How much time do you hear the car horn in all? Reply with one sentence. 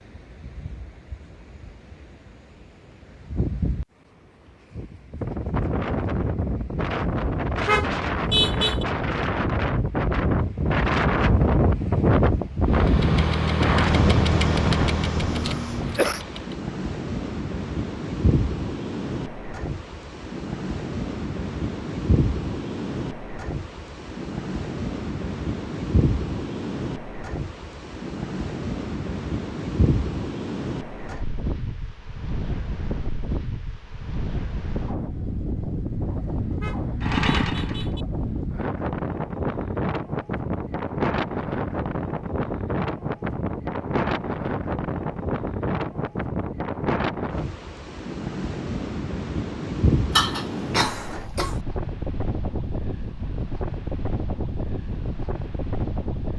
You can hear the car horn for 3 seconds altogether.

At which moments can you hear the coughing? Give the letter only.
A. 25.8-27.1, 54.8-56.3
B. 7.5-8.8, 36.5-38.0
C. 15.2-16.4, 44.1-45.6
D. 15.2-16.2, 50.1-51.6
D.